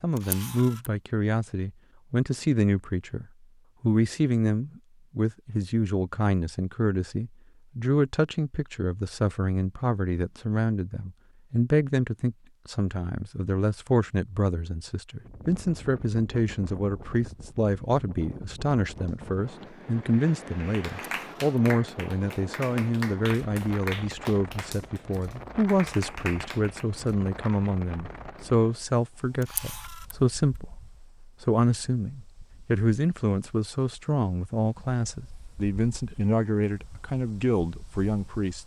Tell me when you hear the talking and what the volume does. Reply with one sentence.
The talking can be heard from 0.0 to 38.6 s, at a steady volume.